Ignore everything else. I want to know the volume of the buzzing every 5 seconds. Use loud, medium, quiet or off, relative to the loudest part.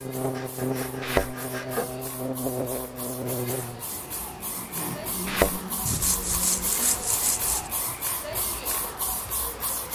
loud, medium.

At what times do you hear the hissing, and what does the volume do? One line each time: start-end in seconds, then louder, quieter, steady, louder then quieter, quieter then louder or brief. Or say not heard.
0.0-9.9 louder.